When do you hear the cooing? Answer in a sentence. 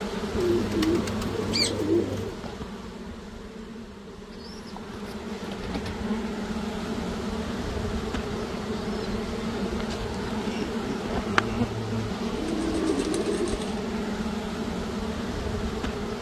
The cooing can be heard from 0.3 to 2.4 s, from 4.3 to 6.1 s, from 8.3 to 10.3 s and from 12.2 to 13.8 s.